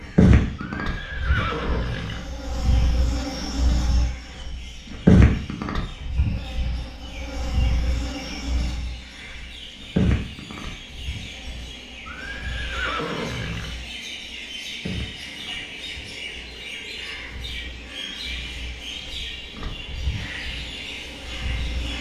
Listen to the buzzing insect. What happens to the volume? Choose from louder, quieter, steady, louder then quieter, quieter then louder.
louder then quieter.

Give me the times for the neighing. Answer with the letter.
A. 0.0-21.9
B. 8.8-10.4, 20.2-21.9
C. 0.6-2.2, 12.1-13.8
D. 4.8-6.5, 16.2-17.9
C.